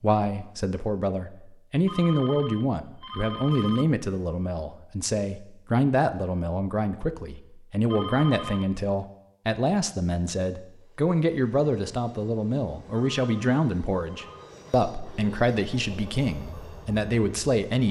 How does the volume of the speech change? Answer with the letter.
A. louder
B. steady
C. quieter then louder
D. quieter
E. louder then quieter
B.